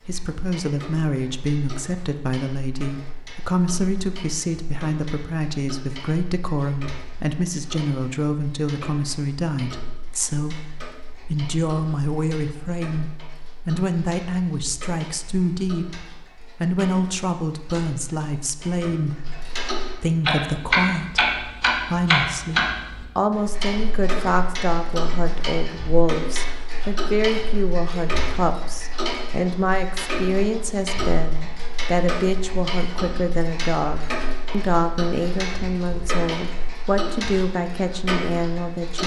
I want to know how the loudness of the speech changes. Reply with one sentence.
The volume of the speech stays about the same.